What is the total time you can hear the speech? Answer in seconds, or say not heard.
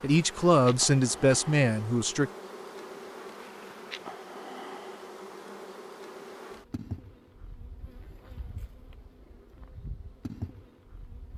2 s.